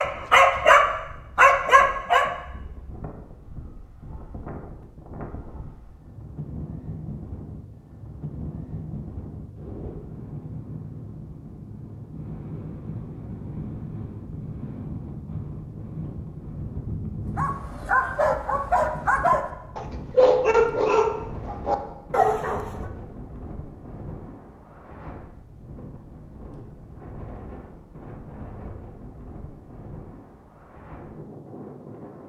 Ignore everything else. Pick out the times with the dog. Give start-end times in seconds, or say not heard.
0.0-2.3, 17.4-22.6.